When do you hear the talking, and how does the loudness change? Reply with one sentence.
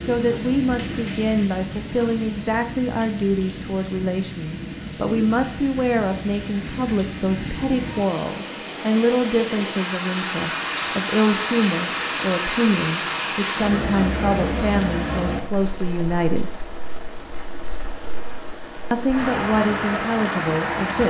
The talking can be heard from 0.1 to 16.5 s, at a steady volume; and briefly from 18.9 to 21.0 s.